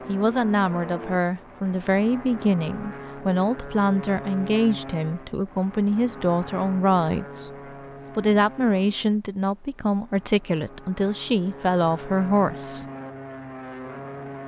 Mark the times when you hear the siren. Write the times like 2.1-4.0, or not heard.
not heard.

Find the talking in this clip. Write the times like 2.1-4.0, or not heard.
0.1-7.5, 8.2-12.8.